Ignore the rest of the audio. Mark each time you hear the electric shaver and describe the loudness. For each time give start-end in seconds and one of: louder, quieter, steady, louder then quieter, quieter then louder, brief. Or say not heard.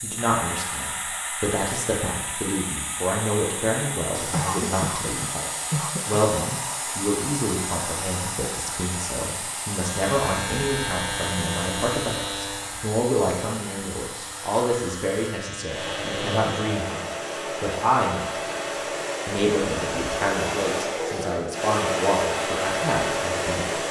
9.7-16.8 quieter then louder.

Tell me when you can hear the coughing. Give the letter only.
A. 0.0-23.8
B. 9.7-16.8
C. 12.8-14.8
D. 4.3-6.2
D.